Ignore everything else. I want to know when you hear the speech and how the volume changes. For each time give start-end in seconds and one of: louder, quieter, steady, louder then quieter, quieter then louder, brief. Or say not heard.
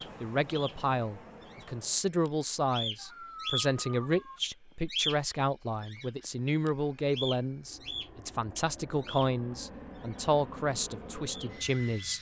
0.0-12.1 steady.